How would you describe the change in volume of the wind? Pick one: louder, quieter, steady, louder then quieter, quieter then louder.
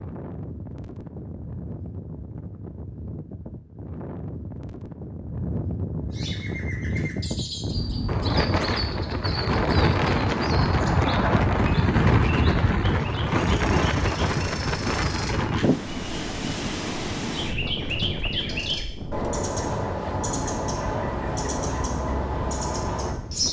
louder then quieter.